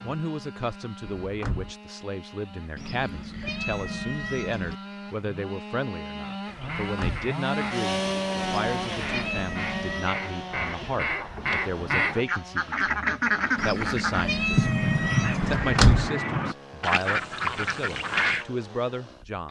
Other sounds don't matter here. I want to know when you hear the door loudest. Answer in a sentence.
The loudest moment of the door is at 16 seconds.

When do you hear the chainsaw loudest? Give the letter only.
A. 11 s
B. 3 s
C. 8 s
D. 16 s
C.